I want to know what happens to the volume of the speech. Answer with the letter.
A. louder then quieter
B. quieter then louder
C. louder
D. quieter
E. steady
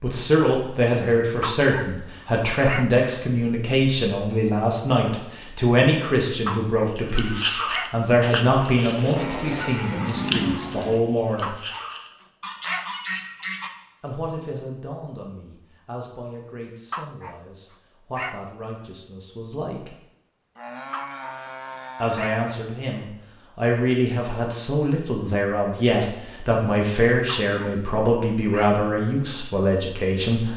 B.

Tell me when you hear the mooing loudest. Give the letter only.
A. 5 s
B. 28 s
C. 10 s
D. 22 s
C.